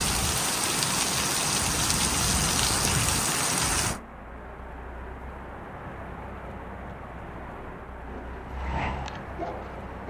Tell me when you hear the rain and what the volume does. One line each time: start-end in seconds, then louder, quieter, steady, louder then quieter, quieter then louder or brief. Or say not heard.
0.0-10.0 quieter.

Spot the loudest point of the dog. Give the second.
9 s.